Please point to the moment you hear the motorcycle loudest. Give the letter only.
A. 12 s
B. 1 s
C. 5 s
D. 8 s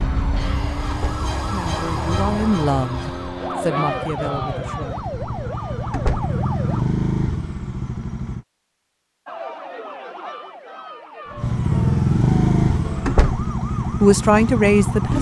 A.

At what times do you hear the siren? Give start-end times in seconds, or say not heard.
0.0-6.8, 9.2-15.1.